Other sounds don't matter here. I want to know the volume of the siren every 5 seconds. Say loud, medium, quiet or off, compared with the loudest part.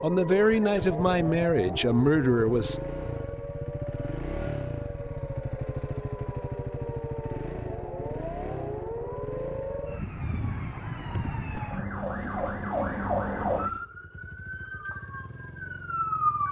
medium, medium, loud, loud.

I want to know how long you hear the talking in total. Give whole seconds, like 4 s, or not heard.
3 s.